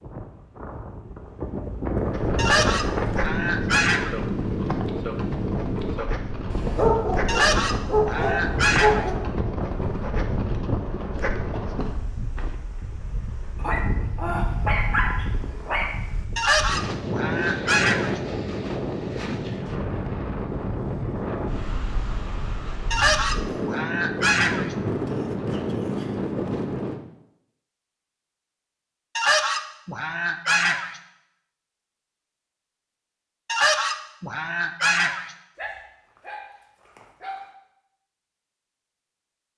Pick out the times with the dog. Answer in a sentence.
The dog can be heard from 6.5 to 9.2 s, from 13.6 to 15.9 s and from 35.5 to 37.5 s.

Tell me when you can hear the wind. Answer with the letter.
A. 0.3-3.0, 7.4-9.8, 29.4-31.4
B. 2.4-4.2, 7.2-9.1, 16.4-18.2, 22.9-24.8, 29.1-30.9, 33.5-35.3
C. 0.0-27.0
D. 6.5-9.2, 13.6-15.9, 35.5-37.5
C.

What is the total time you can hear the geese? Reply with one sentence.
The geese can be heard for 11 seconds in total.